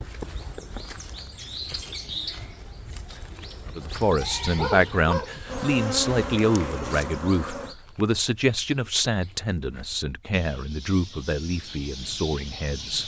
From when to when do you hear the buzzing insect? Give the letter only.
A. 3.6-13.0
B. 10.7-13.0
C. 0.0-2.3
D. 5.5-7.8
D.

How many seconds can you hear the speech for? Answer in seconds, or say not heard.
9 s.